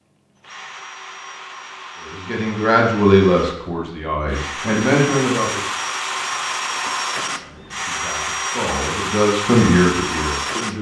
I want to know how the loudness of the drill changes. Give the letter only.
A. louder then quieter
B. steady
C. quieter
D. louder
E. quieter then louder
D.